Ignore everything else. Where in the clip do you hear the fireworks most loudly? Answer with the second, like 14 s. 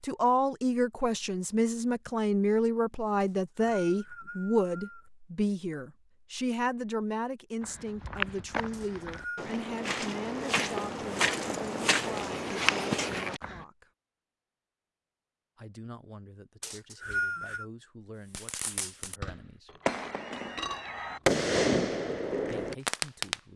21 s.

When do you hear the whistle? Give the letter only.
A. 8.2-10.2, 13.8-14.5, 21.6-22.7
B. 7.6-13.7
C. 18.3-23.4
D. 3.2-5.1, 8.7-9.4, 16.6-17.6
D.